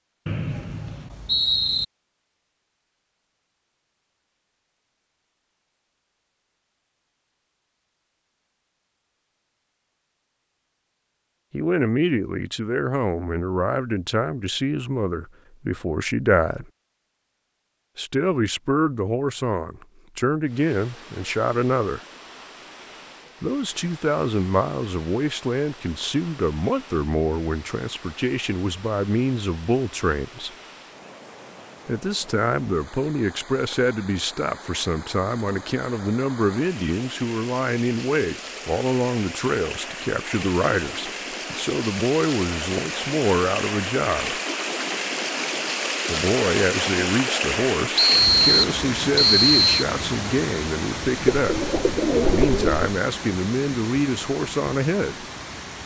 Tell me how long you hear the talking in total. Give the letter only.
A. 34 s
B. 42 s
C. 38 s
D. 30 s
C.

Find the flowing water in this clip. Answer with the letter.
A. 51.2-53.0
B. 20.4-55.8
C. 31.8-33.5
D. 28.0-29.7
B.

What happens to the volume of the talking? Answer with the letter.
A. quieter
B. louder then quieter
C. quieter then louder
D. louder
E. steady
E.